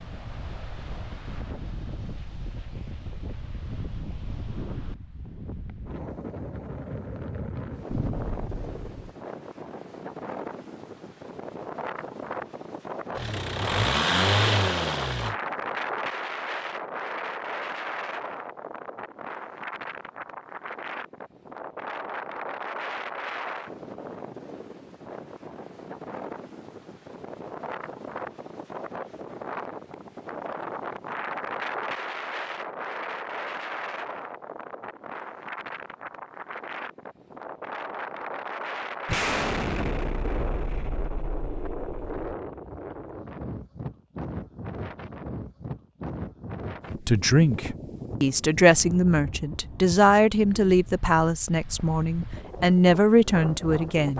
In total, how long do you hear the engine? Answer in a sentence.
The engine can be heard for 2 seconds in total.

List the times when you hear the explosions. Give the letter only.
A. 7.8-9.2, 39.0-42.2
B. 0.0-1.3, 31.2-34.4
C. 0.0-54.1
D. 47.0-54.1
A.